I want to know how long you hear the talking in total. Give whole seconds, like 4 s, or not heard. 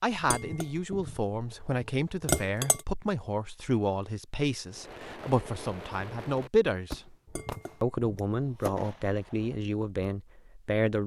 10 s.